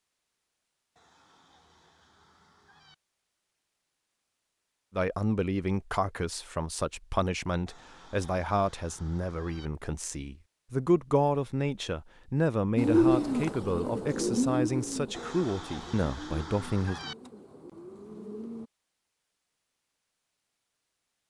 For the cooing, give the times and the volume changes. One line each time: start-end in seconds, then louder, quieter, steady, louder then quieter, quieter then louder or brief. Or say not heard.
12.8-18.7 quieter.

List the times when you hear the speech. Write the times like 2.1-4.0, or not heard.
5.0-17.0.